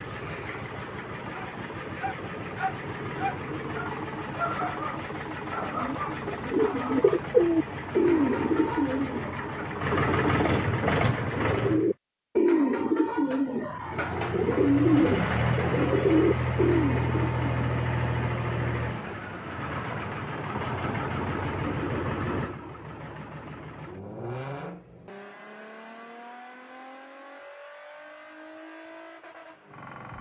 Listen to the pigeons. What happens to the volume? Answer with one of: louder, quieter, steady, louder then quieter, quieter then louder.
steady.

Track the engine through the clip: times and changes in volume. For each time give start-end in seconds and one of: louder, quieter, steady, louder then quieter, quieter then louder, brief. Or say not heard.
0.0-11.9 louder
13.8-30.1 quieter.